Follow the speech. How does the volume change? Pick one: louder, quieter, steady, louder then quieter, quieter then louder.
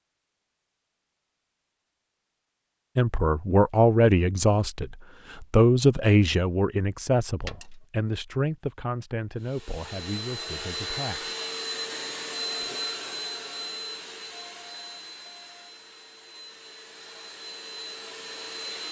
quieter.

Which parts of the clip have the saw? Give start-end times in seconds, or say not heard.
not heard.